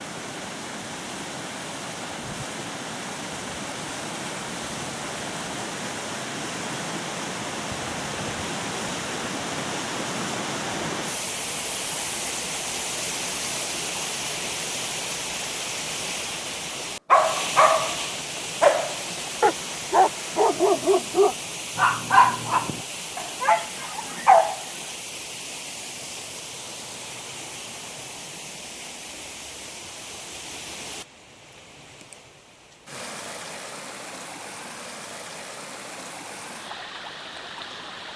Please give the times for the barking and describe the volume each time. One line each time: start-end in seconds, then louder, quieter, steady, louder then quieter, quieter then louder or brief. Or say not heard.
17.1-24.6 quieter.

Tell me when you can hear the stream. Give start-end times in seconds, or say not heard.
0.0-38.1.